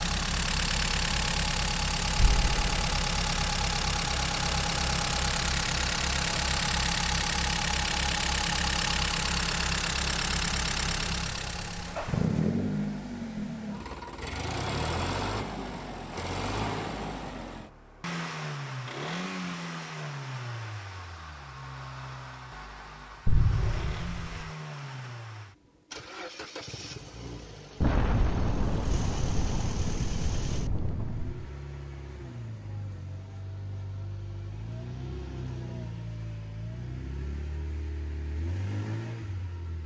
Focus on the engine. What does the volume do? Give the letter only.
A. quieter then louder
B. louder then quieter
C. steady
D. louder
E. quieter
E.